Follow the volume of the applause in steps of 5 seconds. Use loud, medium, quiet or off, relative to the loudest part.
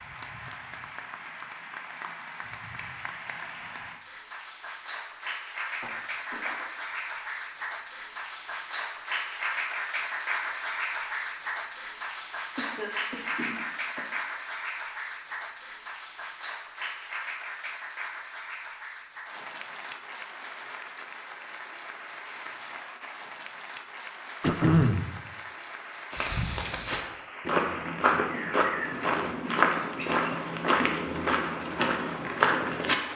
medium, loud, loud, medium, medium, medium, medium.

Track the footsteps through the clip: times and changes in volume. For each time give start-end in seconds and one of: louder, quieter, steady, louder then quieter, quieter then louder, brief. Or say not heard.
26.1-33.0 steady.